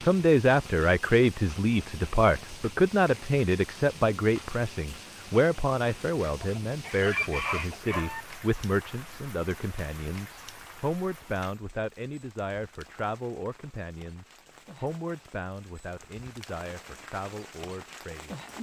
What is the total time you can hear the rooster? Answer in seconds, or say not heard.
2 s.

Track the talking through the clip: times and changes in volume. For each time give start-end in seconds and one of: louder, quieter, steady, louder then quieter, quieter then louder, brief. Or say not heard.
0.0-18.5 quieter.